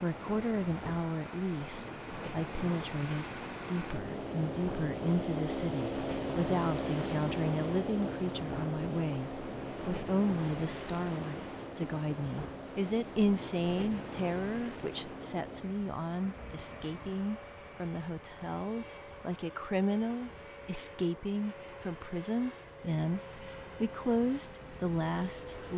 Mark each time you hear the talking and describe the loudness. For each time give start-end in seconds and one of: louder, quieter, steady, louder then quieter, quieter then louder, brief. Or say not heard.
0.0-25.7 steady.